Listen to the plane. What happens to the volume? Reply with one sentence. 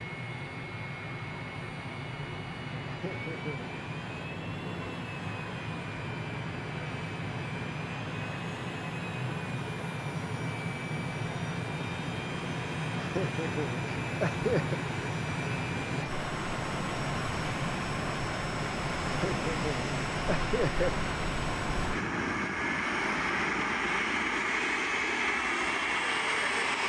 The loudness of the plane goes up.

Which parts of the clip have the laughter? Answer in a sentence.
You can hear the laughter from 2.9 to 3.7 s, from 12.9 to 14.8 s and from 19.1 to 20.9 s.